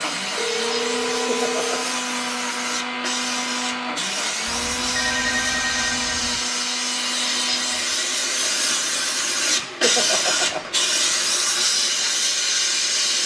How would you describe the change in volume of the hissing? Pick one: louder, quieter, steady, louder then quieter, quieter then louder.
louder.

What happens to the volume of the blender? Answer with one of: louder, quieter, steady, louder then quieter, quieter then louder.
quieter.